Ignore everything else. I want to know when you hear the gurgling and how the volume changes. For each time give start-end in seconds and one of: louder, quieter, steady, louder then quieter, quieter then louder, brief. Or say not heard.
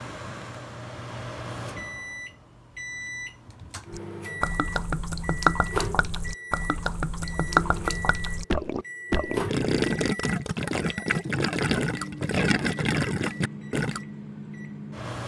3.9-14.0 steady.